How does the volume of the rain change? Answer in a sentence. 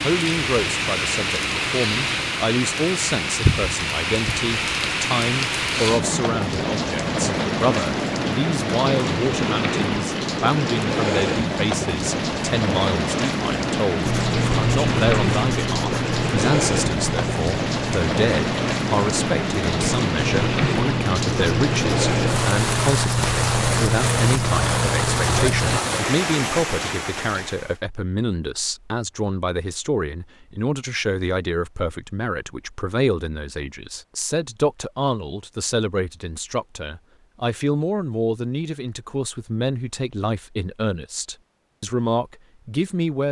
The volume of the rain stays about the same.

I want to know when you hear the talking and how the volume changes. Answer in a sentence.
The talking can be heard from 0.0 to 43.2 s, at a steady volume.